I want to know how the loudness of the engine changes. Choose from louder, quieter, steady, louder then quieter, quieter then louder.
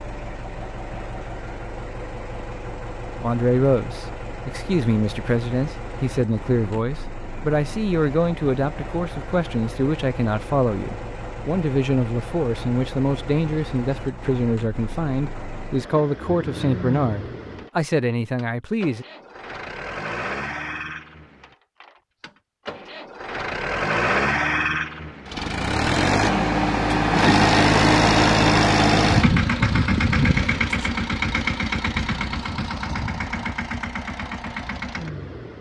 louder.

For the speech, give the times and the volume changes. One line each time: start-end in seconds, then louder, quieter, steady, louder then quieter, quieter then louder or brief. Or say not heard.
3.2-19.1 steady.